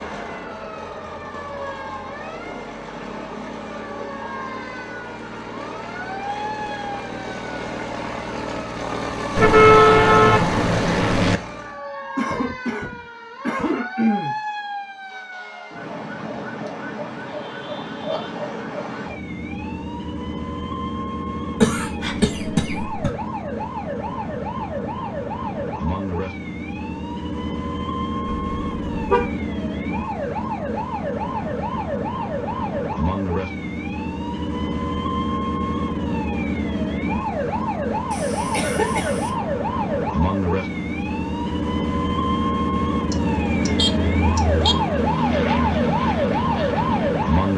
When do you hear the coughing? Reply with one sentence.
You can hear the coughing from 12.2 to 14.3 s, from 21.6 to 23.1 s and from 38.1 to 39.3 s.